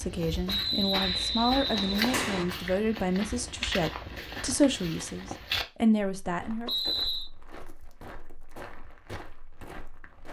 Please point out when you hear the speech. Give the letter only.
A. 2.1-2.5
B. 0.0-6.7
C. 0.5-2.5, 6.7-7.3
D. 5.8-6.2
B.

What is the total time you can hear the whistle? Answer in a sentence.
You can hear the whistle for 3 seconds altogether.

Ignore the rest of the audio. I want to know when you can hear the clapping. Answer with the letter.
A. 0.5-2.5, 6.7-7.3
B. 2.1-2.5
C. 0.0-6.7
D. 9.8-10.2
B.